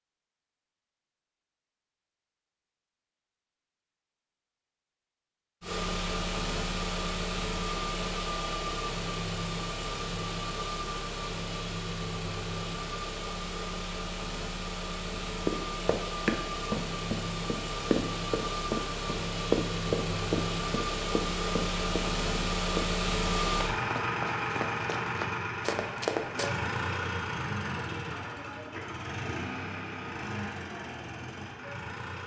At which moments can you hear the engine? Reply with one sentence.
You can hear the engine from 5.6 to 32.2 s.